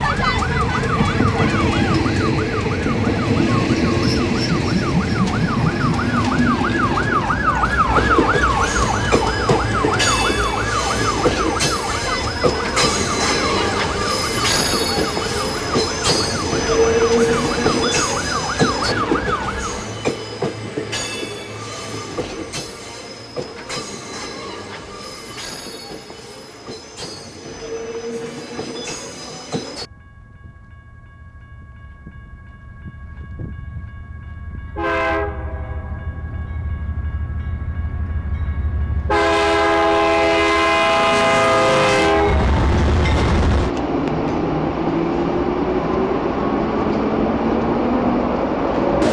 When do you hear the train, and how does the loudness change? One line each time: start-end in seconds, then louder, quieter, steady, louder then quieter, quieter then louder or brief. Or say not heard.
0.0-49.0 quieter then louder.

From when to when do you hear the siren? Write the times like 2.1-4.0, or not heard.
0.0-19.9.